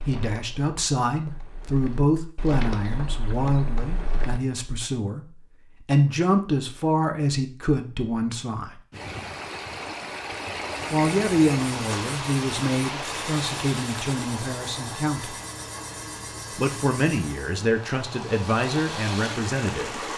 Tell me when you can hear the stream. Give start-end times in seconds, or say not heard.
8.9-20.1.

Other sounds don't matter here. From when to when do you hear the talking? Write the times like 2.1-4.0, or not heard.
0.0-8.8, 10.9-15.3, 16.5-20.0.